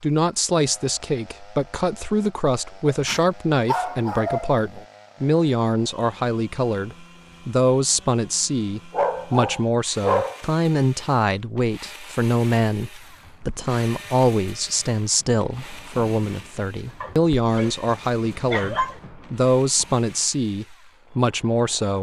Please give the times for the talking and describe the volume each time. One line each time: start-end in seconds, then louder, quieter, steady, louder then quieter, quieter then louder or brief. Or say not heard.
0.0-21.9 steady.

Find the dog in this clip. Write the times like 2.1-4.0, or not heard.
2.9-4.8, 8.9-10.4, 17.0-18.9.